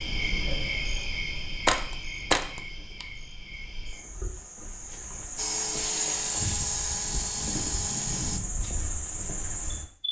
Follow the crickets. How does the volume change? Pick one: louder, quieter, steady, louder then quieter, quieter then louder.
quieter then louder.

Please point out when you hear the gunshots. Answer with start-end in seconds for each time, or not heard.
1.6-3.0.